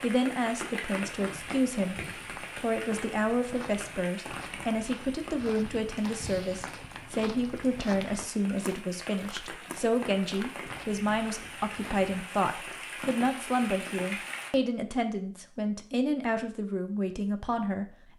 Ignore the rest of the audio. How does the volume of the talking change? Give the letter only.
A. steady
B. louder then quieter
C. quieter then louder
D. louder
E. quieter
A.